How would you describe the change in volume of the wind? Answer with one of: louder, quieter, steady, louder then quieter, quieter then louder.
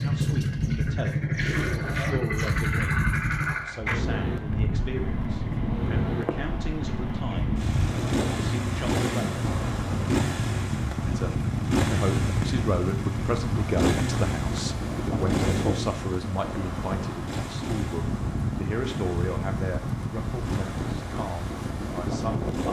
steady.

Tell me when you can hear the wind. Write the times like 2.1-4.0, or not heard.
0.0-22.6.